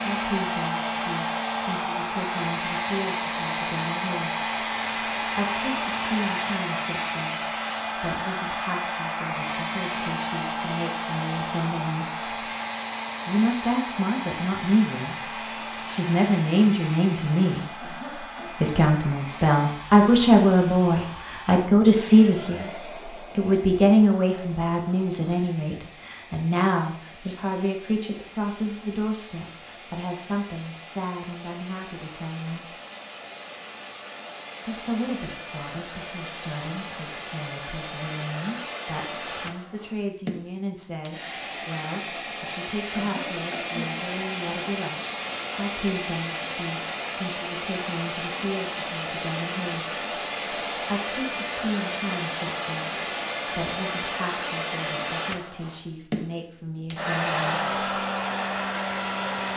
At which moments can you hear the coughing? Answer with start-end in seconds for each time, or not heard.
17.8-18.8, 43.0-44.1.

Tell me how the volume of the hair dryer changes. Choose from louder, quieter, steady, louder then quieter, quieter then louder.
quieter then louder.